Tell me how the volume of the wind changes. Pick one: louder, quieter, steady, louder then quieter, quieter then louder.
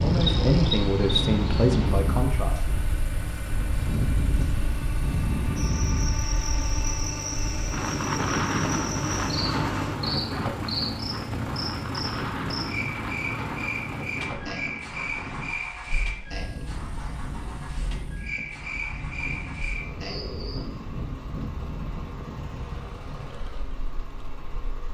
quieter.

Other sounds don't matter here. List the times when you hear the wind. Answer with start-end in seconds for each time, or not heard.
0.0-24.8.